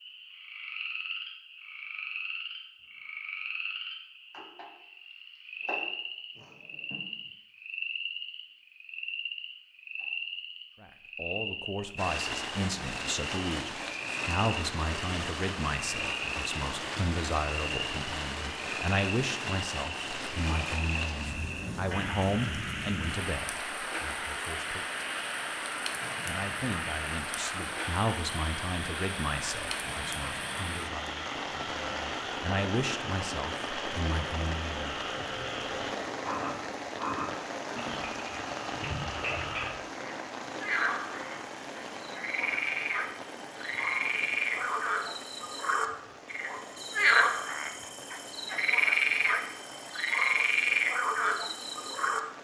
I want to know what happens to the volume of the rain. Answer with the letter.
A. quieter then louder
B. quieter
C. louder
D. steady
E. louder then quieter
B.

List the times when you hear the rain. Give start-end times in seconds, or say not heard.
11.9-52.3.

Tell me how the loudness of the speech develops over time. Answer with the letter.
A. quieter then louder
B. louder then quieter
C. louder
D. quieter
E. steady
E.